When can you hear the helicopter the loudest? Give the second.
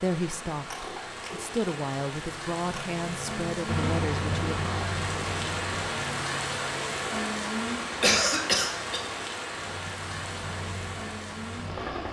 4 s.